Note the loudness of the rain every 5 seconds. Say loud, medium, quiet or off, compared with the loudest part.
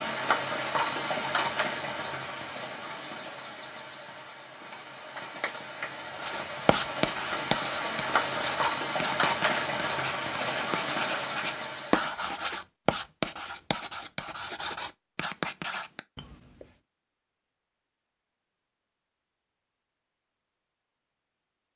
loud, loud, loud, off, off.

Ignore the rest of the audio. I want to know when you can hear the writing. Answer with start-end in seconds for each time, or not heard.
6.2-16.6.